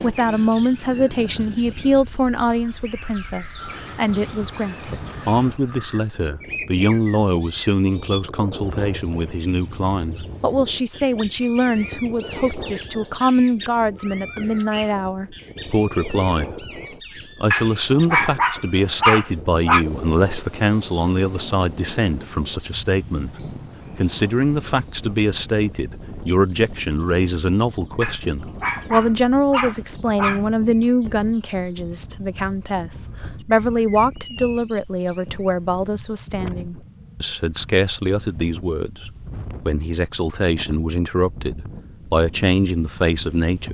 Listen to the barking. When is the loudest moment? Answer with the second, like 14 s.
19 s.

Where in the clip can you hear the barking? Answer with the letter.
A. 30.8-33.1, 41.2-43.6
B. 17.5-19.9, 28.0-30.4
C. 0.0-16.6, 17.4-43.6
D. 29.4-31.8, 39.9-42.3
B.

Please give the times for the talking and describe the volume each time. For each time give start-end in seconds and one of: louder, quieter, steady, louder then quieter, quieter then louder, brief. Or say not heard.
0.0-16.6 steady
17.4-43.6 steady.